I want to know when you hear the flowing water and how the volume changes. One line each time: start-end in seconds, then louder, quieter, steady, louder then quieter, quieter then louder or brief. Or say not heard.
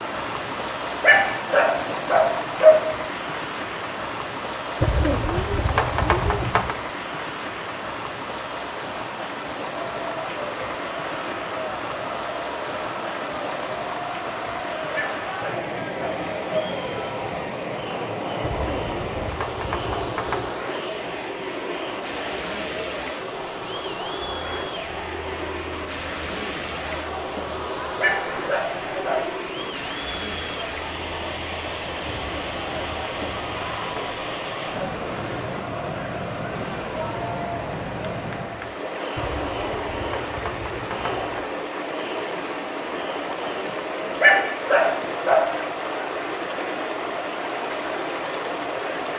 0.0-49.1 steady.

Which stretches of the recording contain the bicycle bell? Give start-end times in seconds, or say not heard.
not heard.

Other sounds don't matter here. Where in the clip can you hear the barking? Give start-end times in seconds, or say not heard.
1.0-2.9, 14.9-16.7, 28.0-29.3, 44.2-45.5.